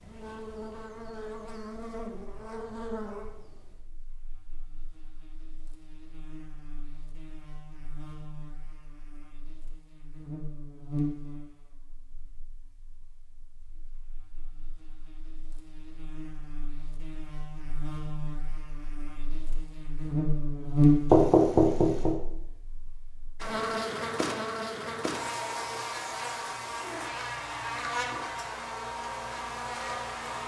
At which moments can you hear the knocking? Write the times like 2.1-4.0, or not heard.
21.1-22.1.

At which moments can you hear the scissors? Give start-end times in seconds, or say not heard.
not heard.